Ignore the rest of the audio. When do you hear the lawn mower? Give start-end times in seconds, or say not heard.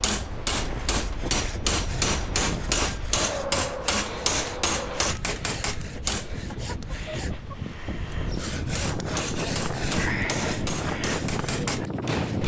not heard.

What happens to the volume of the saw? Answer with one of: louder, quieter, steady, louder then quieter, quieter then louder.
louder.